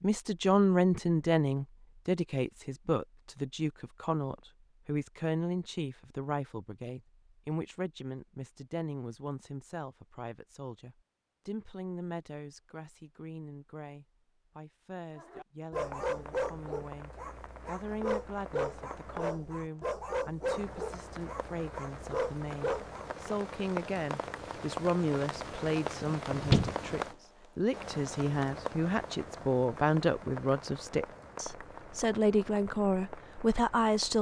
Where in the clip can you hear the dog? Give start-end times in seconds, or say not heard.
15.2-23.1.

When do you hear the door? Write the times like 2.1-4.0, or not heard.
26.1-26.9.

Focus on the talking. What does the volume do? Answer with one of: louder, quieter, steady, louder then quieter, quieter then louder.
quieter then louder.